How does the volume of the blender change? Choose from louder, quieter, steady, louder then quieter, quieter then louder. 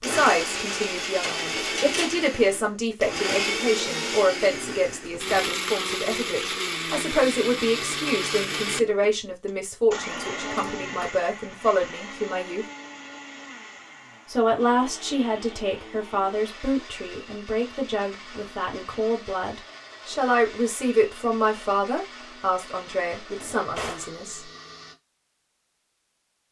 quieter.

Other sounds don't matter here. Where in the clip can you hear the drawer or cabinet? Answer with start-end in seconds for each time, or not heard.
1.2-2.1, 10.1-11.1, 23.3-24.1.